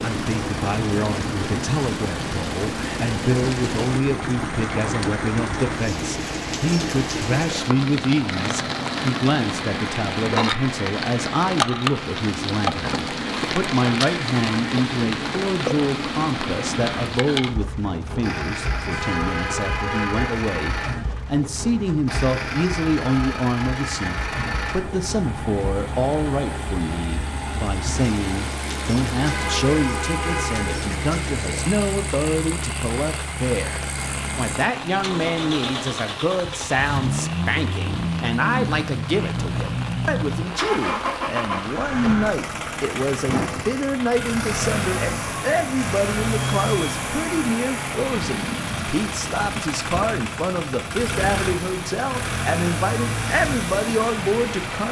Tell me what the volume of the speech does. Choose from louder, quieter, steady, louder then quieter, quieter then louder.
steady.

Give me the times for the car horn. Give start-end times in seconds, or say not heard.
18.9-20.4, 29.2-30.9.